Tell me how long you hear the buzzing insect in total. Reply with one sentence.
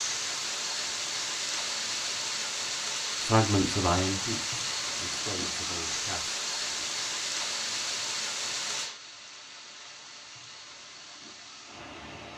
You can't hear the buzzing insect here.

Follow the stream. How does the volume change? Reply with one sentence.
The loudness of the stream goes down.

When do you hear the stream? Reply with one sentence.
The stream can be heard from 0.0 to 12.3 s.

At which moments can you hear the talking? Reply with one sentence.
You can hear the talking from 3.2 to 6.8 s.